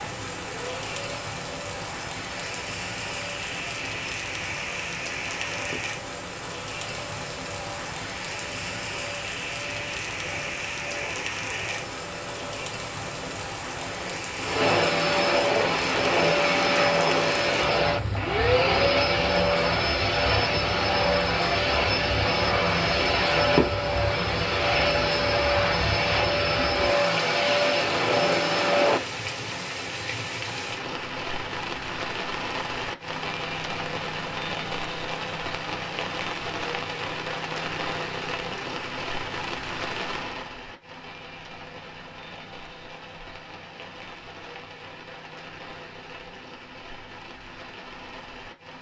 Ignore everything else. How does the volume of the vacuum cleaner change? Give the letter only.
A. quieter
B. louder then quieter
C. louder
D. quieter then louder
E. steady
C.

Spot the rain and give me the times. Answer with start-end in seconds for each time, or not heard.
0.0-48.7.